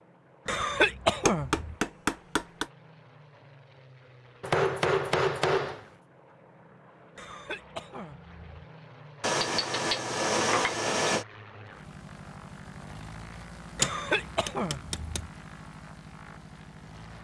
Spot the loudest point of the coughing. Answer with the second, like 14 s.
1 s.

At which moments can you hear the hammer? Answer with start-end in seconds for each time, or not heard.
1.2-2.7, 4.4-5.8, 9.2-11.2, 13.8-15.2.